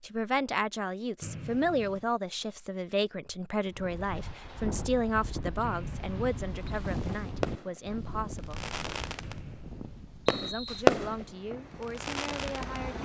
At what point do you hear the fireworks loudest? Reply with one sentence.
The volume of the fireworks peaks at 11 seconds.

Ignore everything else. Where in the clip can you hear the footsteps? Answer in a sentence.
You can't hear the footsteps here.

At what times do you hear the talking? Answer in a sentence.
The talking can be heard from 0.0 to 8.8 s and from 10.3 to 13.0 s.